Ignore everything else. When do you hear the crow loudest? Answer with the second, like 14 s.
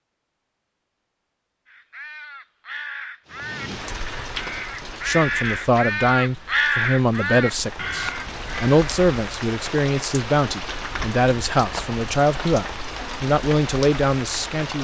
7 s.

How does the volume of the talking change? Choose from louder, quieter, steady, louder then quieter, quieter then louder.
steady.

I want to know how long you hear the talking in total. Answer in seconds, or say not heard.
10 s.